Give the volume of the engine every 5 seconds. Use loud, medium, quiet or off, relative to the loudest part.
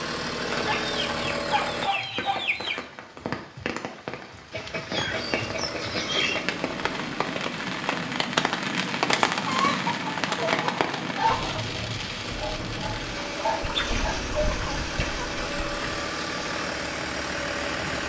loud, medium, medium, loud.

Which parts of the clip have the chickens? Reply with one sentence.
The chickens can be heard from 0.5 to 2.9 s, from 4.5 to 6.5 s, from 9.1 to 11.7 s and from 13.6 to 16.1 s.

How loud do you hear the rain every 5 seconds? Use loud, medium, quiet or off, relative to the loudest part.
medium, loud, loud, medium.